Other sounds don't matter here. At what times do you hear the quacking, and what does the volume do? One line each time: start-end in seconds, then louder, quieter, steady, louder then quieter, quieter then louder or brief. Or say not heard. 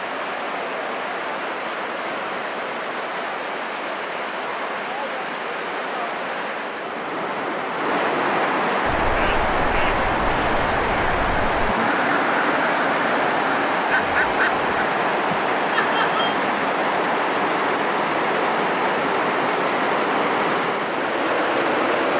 8.9-14.7 louder.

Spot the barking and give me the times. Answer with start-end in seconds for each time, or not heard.
not heard.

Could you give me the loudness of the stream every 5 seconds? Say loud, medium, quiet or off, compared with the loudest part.
medium, loud, loud, loud, loud.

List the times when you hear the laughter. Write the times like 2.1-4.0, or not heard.
15.3-16.2.